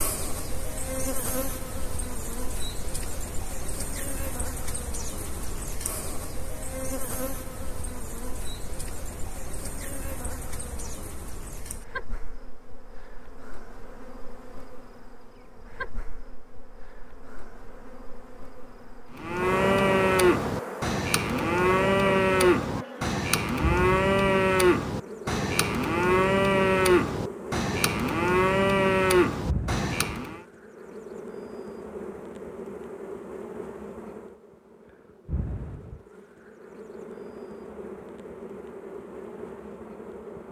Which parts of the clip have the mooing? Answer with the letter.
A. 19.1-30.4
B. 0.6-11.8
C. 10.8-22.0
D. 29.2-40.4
A.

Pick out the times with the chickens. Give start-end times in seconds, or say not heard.
not heard.